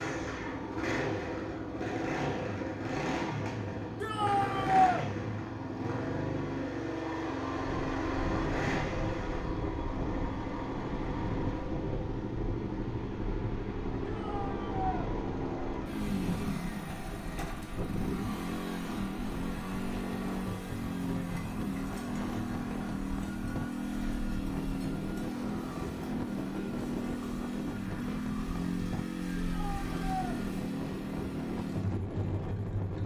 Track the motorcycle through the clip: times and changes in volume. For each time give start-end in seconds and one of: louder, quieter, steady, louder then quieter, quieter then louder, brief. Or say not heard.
0.0-33.0 steady.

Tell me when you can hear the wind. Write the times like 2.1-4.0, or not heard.
7.5-33.0.